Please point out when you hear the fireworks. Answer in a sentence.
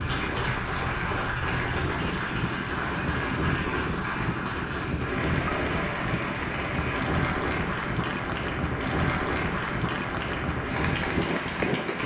You can't hear the fireworks here.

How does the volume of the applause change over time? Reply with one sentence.
The loudness of the applause stays about the same.